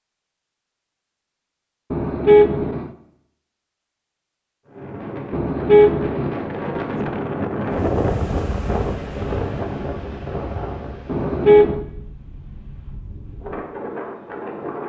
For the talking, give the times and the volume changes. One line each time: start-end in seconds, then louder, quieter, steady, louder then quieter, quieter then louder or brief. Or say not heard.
not heard.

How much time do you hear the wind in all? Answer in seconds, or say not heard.
10 s.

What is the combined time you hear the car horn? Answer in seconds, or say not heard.
3 s.